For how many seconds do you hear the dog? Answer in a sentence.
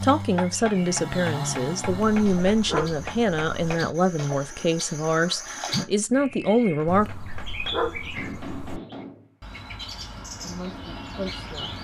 You can hear the dog for 4 seconds altogether.